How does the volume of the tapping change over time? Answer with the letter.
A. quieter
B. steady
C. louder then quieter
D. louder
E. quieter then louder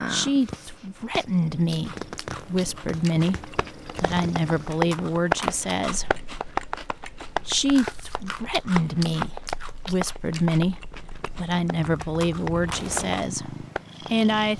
A.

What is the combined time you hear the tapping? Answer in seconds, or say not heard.
11 s.